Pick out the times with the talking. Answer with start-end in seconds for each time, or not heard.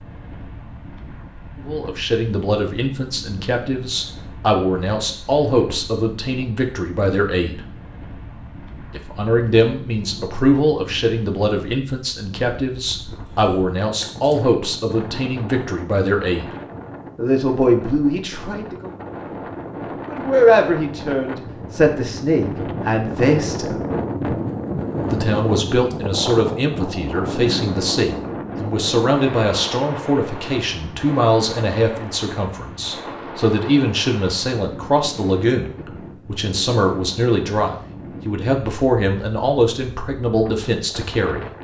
1.6-7.6, 8.9-16.6, 17.1-18.9, 20.1-23.8, 25.1-41.5.